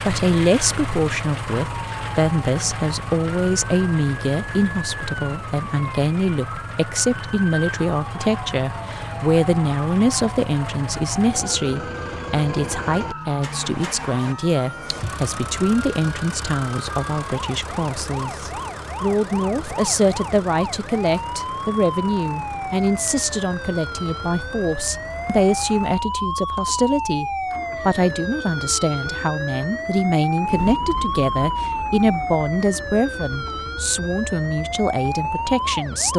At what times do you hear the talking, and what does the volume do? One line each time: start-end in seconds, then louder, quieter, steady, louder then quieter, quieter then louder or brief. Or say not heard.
0.0-36.1 steady.